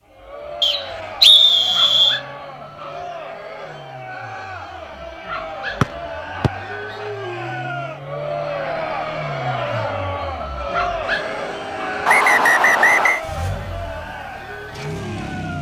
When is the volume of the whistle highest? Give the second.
1 s.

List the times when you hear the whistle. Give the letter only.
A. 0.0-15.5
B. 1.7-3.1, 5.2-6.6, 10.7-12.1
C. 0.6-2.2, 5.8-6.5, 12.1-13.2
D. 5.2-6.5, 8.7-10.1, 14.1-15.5
C.